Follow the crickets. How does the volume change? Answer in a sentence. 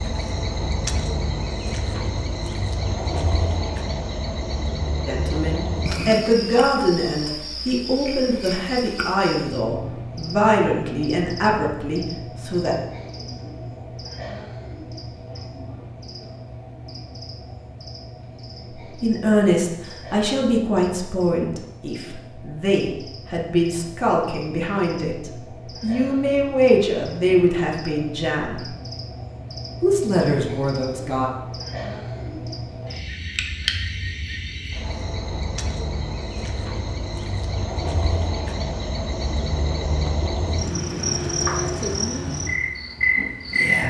The volume of the crickets goes down, then up.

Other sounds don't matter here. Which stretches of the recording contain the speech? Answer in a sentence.
You can hear the speech from 5.0 to 12.8 s, from 19.0 to 28.8 s and from 29.8 to 31.3 s.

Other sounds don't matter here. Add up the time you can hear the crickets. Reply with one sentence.
The crickets can be heard for 44 seconds in total.